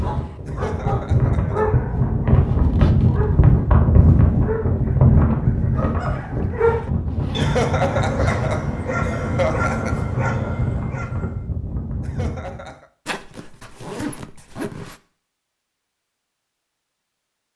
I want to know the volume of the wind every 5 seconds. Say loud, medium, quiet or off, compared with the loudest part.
loud, loud, medium, off.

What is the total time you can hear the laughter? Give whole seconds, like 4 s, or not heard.
5 s.